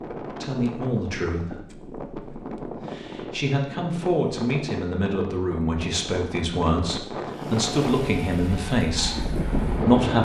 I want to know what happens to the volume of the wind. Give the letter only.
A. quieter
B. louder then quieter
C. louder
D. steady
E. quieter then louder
C.